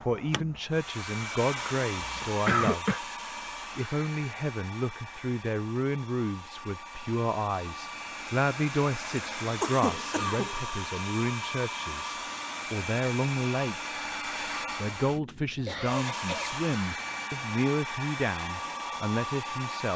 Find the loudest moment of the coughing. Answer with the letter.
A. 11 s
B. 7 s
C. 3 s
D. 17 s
C.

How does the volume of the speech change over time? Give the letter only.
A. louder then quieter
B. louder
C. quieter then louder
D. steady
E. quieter
D.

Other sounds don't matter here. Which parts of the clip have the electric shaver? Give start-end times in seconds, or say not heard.
not heard.